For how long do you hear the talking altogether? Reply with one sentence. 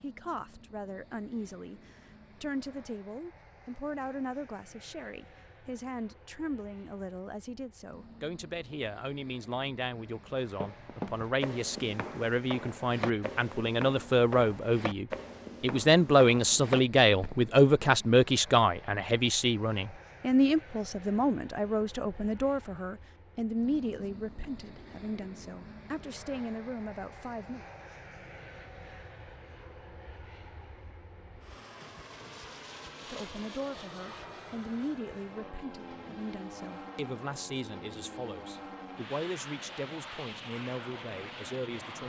You can hear the talking for 37 seconds altogether.